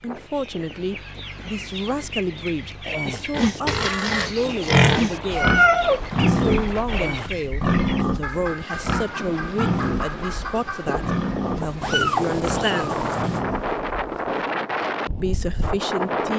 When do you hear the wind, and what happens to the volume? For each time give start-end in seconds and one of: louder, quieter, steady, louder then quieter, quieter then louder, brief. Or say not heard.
0.0-16.3 louder.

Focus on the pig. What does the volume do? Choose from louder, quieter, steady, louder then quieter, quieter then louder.
quieter.